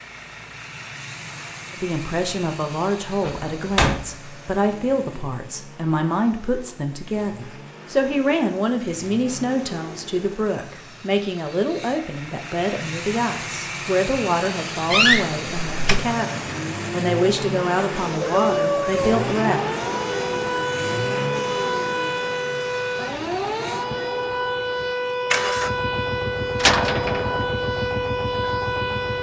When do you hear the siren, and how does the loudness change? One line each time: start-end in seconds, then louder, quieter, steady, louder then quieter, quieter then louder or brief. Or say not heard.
18.2-29.1 steady.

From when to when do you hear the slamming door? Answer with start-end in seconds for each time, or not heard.
3.2-4.1, 14.9-16.0, 26.6-27.4.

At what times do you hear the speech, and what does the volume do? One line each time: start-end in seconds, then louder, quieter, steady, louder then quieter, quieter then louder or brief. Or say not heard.
1.8-19.6 steady.